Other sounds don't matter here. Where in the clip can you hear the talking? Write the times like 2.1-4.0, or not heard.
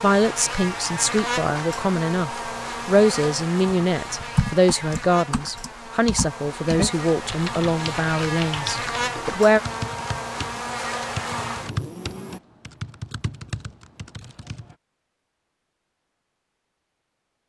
0.0-9.6.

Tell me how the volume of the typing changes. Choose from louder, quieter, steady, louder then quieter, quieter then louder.
quieter.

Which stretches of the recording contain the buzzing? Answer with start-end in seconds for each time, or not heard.
0.0-12.4.